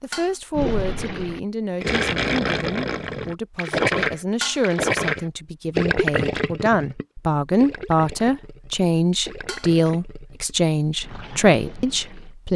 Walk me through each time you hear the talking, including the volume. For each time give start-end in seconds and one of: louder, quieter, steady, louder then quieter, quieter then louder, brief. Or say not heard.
0.0-12.5 louder.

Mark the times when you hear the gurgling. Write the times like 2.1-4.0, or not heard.
0.5-12.3.